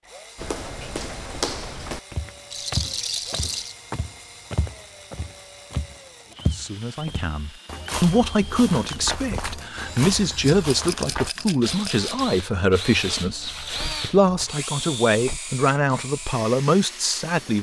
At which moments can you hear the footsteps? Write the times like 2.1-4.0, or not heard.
0.3-11.3.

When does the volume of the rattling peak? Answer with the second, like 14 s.
3 s.